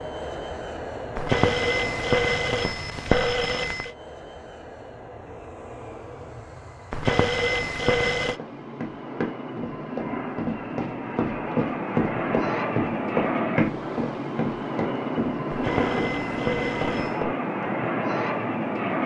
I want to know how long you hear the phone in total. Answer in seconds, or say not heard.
6 s.